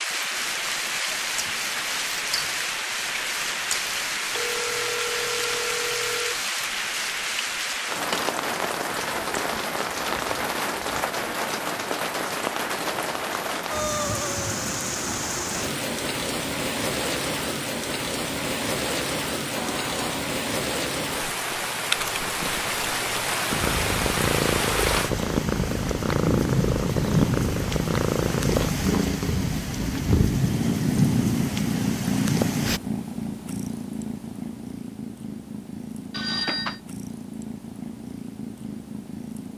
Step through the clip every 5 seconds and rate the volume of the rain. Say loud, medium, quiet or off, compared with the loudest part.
loud, loud, loud, loud, loud, loud, loud, off.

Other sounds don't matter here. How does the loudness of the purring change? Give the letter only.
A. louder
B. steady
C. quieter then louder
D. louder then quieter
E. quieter
E.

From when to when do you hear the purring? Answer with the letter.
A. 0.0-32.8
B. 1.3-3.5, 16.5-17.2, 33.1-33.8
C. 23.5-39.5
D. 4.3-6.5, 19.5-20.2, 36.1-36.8
C.